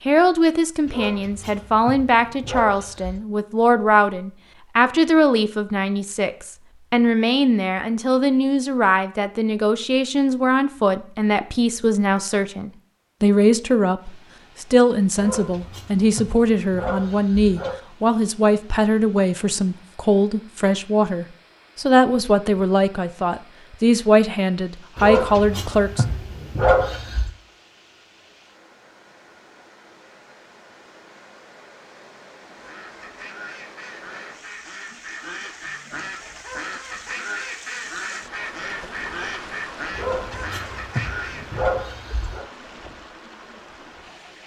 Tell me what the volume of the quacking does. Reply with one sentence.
The volume of the quacking goes up.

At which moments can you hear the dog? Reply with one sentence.
You can hear the dog from 0.8 to 3.2 s, from 15.2 to 17.8 s, from 24.9 to 27.3 s and from 39.9 to 42.5 s.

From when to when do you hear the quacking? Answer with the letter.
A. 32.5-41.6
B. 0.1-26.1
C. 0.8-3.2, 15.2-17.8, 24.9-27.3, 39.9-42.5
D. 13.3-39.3
A.